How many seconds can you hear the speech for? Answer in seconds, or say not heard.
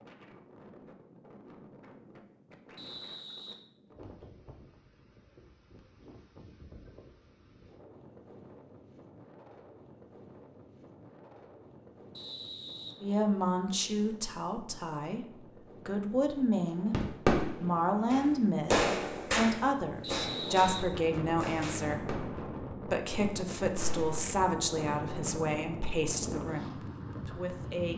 14 s.